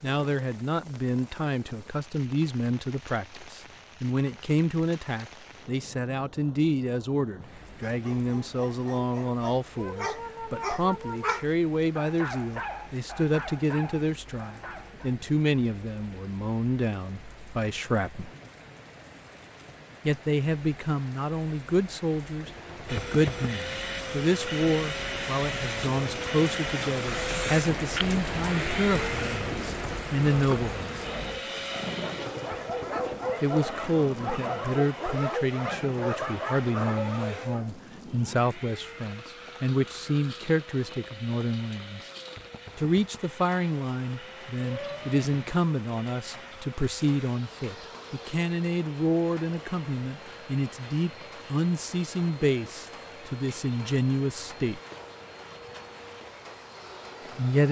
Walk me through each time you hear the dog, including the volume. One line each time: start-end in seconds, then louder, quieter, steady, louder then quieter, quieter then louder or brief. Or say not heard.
7.8-15.2 louder then quieter
30.3-37.7 louder.